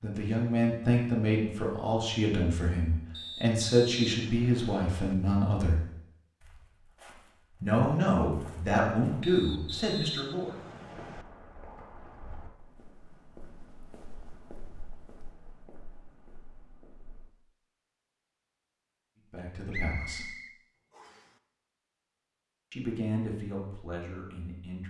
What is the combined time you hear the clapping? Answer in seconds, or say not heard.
not heard.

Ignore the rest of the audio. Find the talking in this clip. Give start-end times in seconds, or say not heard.
0.0-5.8, 7.6-10.6, 19.3-20.3, 22.7-24.8.